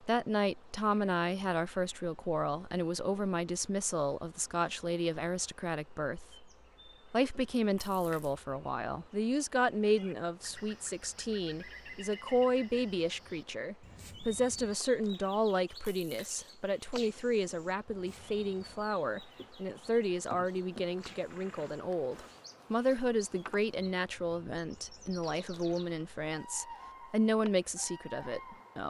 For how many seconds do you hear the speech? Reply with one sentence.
You can hear the speech for 28 seconds altogether.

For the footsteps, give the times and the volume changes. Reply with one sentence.
The footsteps can't be heard in this clip.